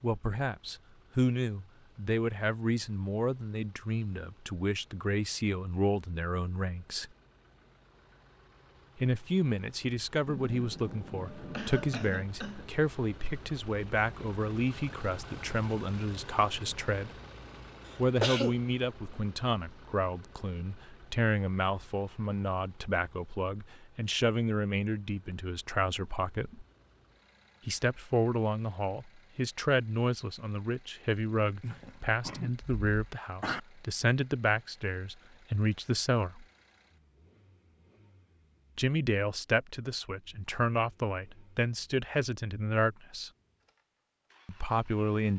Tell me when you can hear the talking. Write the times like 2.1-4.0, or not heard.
0.0-7.1, 8.9-17.1, 17.9-26.6, 27.6-36.5, 38.8-43.3, 44.5-45.3.